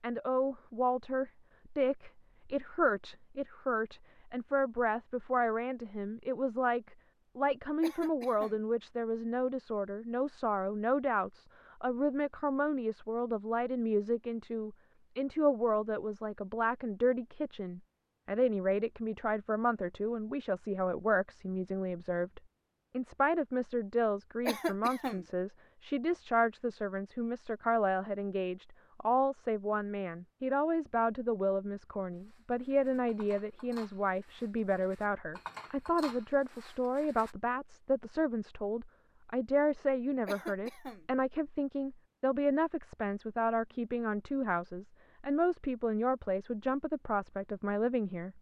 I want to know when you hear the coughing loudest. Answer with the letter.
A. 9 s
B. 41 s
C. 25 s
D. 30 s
C.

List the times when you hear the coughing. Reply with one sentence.
You can hear the coughing from 7.8 to 8.6 s, from 24.4 to 25.2 s and from 40.2 to 41.0 s.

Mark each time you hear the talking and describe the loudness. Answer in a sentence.
The talking can be heard from 0.0 to 48.3 s, at a steady volume.